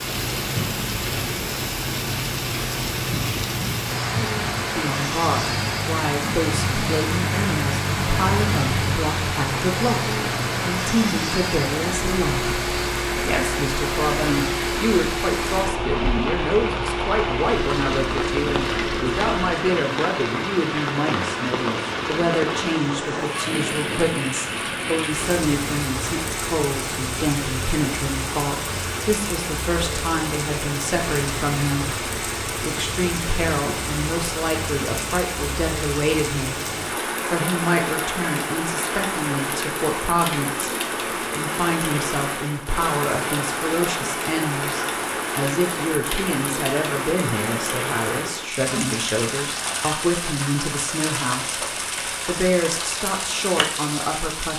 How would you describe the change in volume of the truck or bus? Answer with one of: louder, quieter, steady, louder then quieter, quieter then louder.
steady.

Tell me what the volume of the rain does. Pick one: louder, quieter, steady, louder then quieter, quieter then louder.
steady.